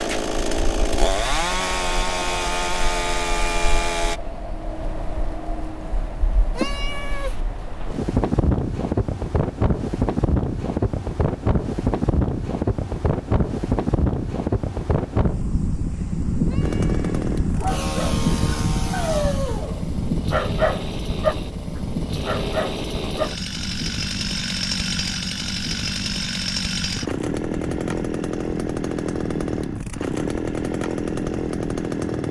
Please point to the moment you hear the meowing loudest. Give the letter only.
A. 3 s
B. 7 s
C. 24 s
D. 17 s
B.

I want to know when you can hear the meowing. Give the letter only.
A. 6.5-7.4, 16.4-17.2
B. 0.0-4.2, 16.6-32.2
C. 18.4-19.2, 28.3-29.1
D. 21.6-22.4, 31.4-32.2
A.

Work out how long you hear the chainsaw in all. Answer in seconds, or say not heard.
20 s.